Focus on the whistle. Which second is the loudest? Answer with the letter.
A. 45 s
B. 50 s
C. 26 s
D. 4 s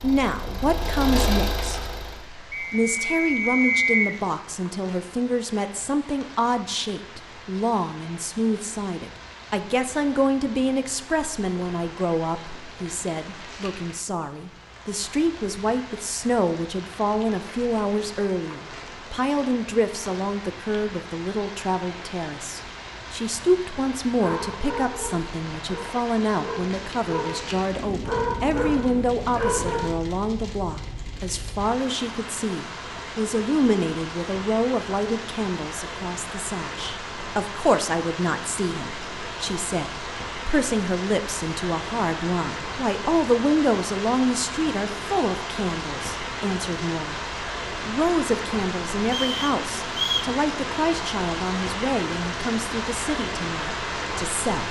D.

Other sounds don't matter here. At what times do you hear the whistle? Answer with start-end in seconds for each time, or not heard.
2.5-4.2, 49.0-50.4.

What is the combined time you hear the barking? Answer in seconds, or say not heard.
6 s.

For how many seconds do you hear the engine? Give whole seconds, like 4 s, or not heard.
2 s.